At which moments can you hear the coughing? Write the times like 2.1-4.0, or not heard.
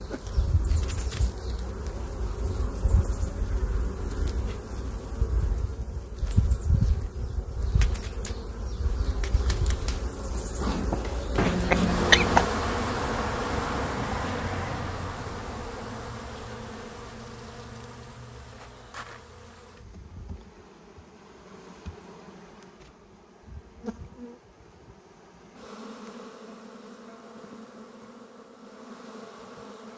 11.3-12.5.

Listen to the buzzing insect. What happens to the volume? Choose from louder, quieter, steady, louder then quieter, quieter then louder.
louder then quieter.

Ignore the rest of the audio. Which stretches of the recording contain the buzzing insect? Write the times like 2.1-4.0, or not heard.
0.0-29.9.